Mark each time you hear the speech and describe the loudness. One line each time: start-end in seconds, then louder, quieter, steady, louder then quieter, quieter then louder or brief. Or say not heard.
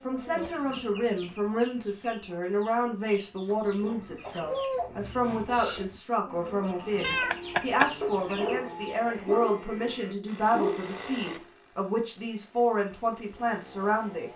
0.0-14.3 steady.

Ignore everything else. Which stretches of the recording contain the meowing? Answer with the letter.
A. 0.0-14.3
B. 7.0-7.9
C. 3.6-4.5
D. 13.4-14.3
B.